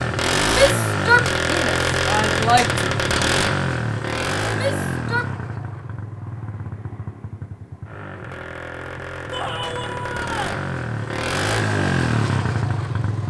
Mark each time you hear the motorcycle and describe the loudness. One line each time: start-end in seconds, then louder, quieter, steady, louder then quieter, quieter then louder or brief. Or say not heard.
0.0-13.2 quieter then louder.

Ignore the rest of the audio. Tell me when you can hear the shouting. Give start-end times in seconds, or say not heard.
0.5-2.8, 4.5-5.3, 9.3-10.6.